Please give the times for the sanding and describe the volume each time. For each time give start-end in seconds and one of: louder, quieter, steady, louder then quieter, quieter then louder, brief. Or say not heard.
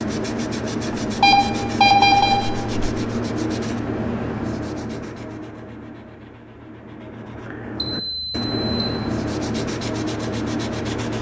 0.0-11.1 quieter then louder.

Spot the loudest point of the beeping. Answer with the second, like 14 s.
2 s.